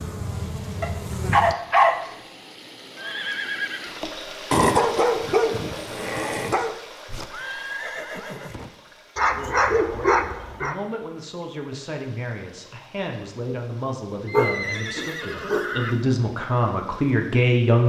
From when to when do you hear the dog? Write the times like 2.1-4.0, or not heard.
0.8-2.0, 4.5-6.8, 9.2-10.8, 14.3-15.7.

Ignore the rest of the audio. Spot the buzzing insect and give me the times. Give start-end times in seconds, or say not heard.
0.0-1.6.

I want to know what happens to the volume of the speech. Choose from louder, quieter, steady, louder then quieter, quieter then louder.
louder.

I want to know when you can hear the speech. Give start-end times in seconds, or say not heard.
9.3-17.8.